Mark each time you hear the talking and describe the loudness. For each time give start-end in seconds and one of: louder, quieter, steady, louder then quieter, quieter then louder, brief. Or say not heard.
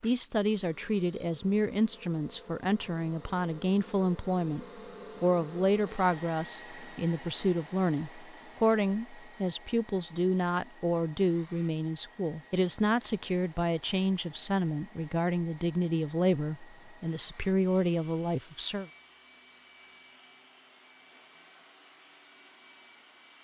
0.0-18.9 steady.